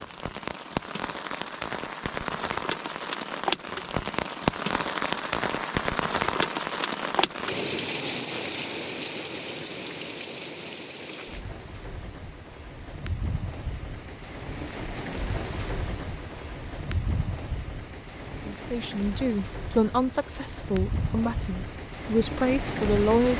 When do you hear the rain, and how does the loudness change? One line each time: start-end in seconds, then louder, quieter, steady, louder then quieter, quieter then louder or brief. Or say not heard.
0.0-23.3 quieter.